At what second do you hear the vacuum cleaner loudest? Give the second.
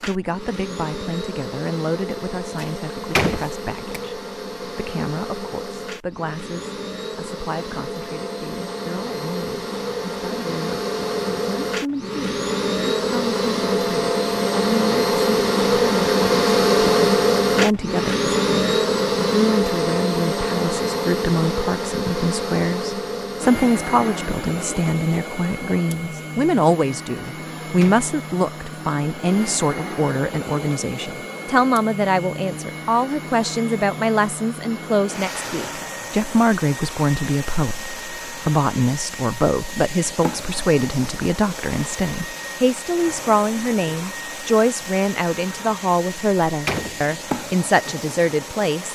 17 s.